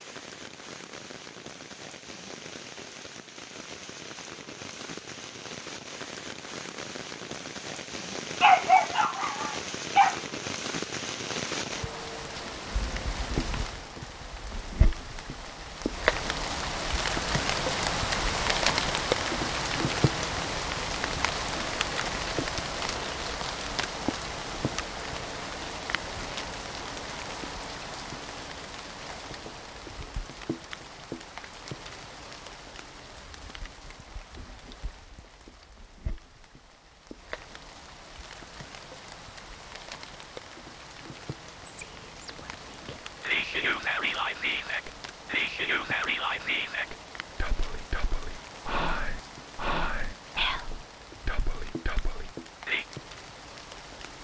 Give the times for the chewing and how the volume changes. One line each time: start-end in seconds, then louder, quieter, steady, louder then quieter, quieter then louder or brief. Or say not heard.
not heard.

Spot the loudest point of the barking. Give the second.
9 s.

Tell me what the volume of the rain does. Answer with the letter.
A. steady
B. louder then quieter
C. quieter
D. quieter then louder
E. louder
B.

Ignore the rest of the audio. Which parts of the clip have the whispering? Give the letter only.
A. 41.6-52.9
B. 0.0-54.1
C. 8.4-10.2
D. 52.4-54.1
A.